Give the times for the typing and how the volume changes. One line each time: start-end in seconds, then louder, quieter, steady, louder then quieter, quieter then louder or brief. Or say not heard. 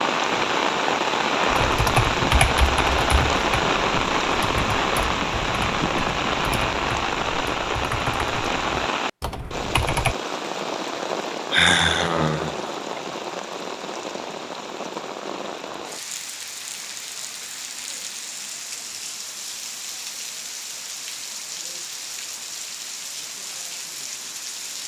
1.4-10.2 quieter.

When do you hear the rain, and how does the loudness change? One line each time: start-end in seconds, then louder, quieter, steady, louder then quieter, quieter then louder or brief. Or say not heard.
0.0-24.8 quieter.